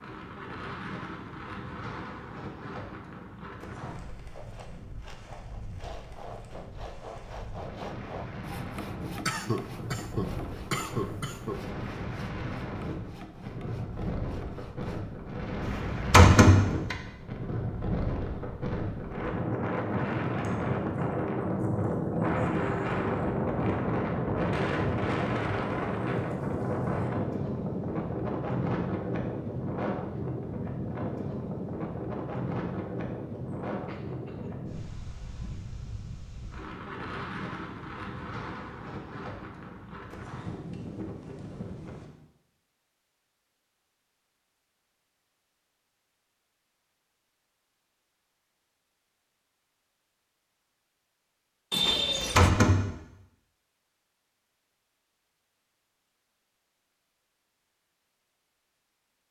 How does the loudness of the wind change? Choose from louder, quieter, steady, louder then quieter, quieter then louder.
louder then quieter.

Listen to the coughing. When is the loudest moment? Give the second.
52 s.